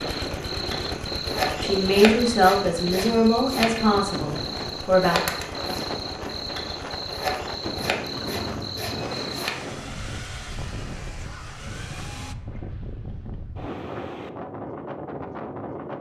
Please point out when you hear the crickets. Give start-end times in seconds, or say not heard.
0.0-9.7.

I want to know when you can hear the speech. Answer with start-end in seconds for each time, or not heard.
1.6-5.2.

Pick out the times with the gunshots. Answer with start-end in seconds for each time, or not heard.
not heard.